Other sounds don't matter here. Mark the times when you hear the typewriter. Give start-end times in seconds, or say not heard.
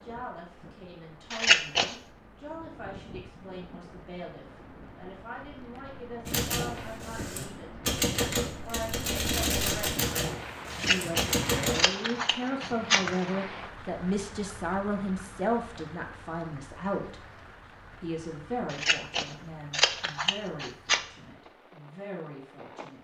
6.2-11.9.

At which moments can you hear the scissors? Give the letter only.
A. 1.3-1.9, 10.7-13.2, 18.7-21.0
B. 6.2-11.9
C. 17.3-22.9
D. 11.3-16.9
A.